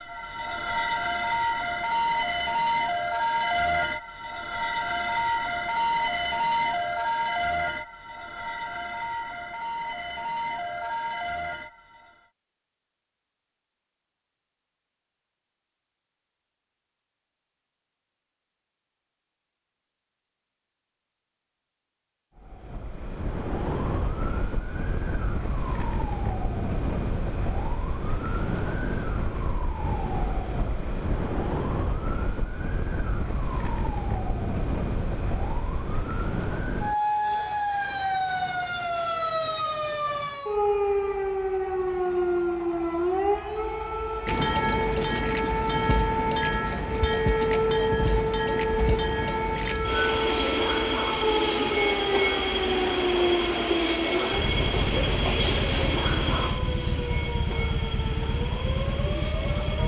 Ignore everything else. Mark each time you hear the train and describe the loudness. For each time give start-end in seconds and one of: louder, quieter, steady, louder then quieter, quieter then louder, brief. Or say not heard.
44.2-59.8 quieter.